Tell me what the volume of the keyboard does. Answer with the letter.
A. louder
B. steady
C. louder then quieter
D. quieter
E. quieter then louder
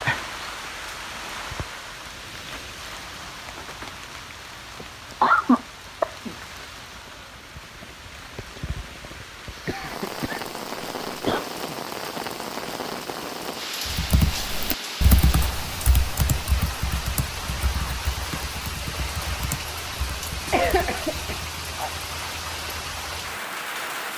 D.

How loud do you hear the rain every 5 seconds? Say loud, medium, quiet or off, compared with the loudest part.
loud, medium, loud, loud, loud.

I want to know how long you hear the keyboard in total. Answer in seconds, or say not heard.
8 s.